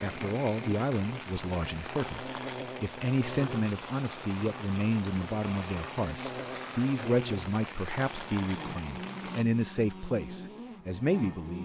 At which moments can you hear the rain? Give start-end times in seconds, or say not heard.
0.0-9.4.